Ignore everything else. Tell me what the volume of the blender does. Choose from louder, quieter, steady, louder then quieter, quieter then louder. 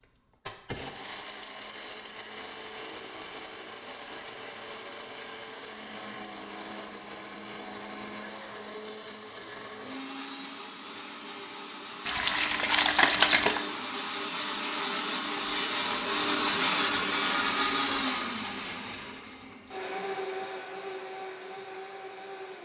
louder then quieter.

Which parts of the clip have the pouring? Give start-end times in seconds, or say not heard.
12.1-13.7.